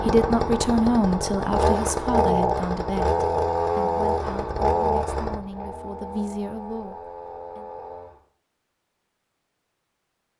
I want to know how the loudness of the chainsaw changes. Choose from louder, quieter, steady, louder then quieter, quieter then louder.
quieter.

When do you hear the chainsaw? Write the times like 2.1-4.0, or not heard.
0.0-8.2.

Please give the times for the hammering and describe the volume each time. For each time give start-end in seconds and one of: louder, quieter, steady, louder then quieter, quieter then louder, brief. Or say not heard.
not heard.